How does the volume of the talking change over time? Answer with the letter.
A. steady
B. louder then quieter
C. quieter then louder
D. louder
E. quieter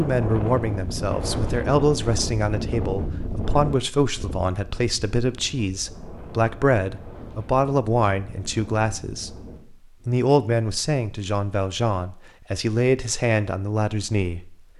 A.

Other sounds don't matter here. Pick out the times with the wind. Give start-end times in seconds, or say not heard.
0.0-10.2.